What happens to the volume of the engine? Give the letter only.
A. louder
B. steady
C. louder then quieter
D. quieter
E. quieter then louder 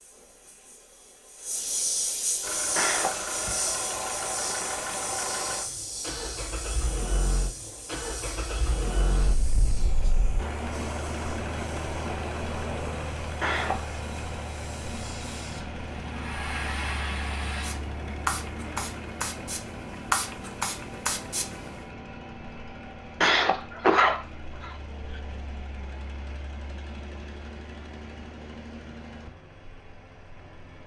D.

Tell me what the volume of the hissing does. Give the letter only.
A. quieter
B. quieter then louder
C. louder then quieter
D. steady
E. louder
B.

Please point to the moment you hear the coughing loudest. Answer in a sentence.
The volume of the coughing peaks at 24 seconds.